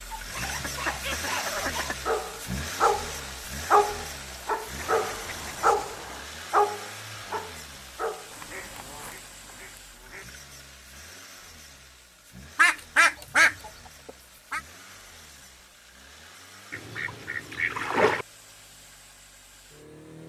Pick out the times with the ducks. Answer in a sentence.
You can hear the ducks from 0.4 to 2.2 s, from 4.8 to 6.3 s, from 8.3 to 10.2 s, from 12.6 to 14.6 s and from 16.7 to 18.2 s.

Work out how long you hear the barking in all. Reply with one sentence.
You can hear the barking for 8 seconds altogether.